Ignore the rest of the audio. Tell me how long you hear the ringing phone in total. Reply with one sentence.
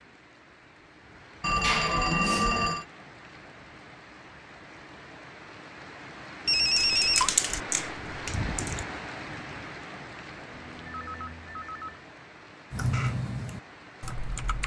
The ringing phone can be heard for 4 seconds in total.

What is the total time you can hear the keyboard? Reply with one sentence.
You can hear the keyboard for 4 seconds altogether.